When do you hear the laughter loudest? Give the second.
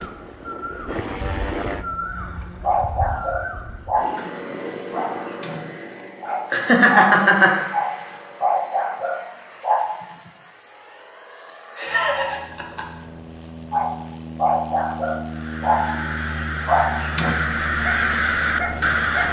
7 s.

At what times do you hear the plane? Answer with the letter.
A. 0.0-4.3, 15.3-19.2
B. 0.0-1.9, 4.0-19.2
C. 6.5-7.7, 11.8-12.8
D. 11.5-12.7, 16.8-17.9
B.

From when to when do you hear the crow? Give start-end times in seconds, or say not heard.
0.0-4.3, 15.3-19.2.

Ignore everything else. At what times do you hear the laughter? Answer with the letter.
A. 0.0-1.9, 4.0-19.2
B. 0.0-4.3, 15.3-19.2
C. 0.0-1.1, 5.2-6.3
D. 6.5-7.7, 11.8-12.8
D.